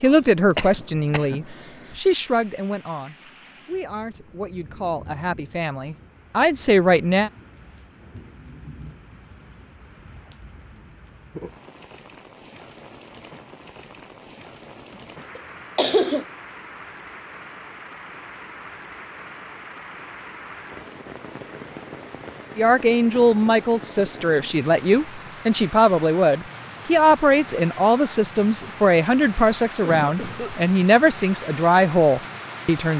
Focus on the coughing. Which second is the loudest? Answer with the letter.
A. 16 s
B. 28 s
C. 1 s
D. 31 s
A.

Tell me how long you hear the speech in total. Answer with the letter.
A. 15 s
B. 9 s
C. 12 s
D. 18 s
D.